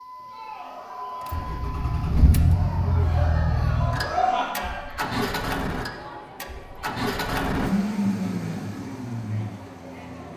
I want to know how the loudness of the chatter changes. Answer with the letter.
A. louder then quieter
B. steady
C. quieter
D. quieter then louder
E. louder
A.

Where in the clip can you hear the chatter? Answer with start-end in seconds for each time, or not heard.
0.1-10.3.